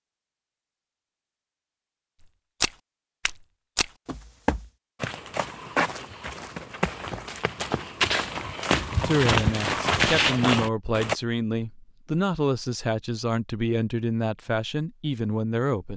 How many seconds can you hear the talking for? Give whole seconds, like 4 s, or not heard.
7 s.